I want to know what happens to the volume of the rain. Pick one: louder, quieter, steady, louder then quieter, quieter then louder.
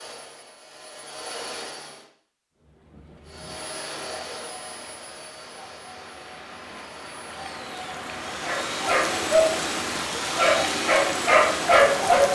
louder.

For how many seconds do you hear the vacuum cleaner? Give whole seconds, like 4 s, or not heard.
11 s.